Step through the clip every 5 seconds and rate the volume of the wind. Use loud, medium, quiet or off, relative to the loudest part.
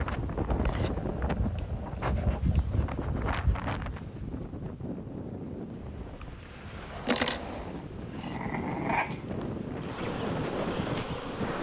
loud, medium, loud.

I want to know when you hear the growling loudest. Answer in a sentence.
The volume of the growling peaks at 9 seconds.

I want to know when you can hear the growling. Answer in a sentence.
You can hear the growling from 0.8 to 2.9 s and from 7.5 to 9.2 s.